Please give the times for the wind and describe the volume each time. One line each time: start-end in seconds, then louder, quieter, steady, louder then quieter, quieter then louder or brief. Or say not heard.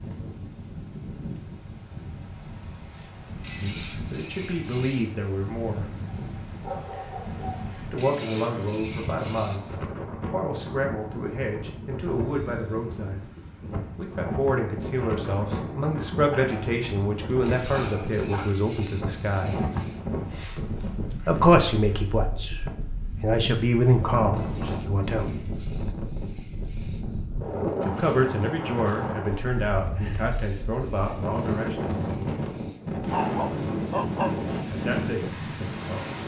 0.0-36.2 louder.